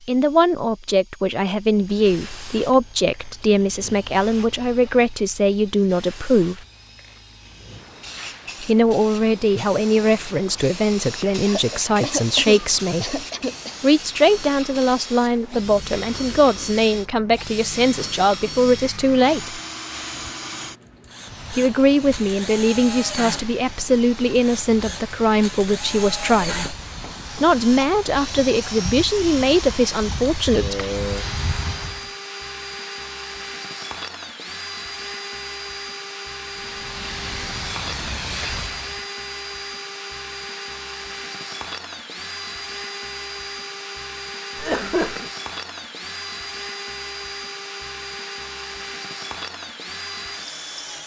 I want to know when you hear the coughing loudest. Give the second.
45 s.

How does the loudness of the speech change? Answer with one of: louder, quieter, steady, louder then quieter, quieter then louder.
steady.